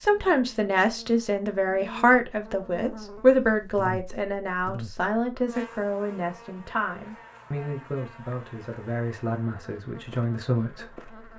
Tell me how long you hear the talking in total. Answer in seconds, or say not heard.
11 s.